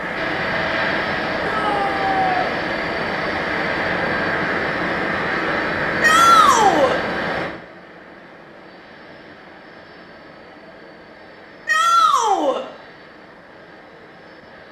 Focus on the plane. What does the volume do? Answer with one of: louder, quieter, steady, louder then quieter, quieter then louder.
quieter.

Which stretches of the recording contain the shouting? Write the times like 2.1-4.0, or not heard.
1.4-2.4, 6.0-7.0, 11.7-12.7.